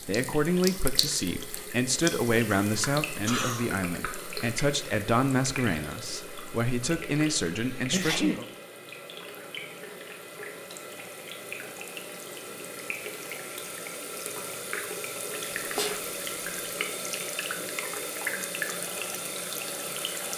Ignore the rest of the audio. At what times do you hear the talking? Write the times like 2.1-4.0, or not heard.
0.1-8.4.